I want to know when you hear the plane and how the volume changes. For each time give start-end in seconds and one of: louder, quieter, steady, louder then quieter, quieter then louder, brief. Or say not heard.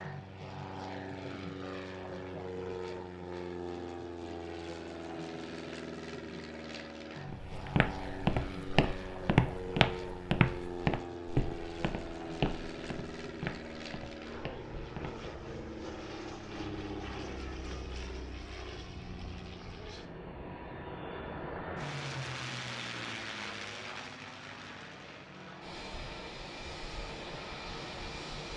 0.0-28.5 steady.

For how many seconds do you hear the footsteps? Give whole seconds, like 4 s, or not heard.
8 s.